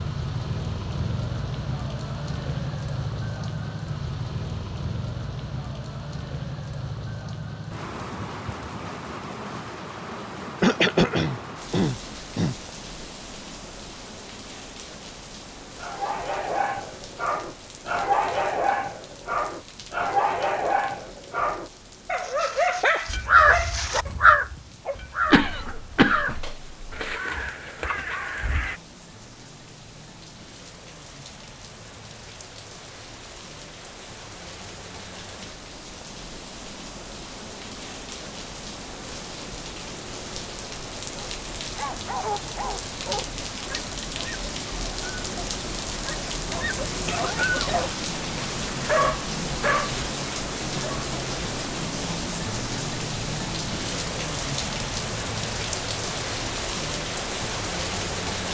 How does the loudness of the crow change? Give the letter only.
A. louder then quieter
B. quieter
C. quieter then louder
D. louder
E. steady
B.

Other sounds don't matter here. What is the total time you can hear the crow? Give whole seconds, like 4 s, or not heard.
6 s.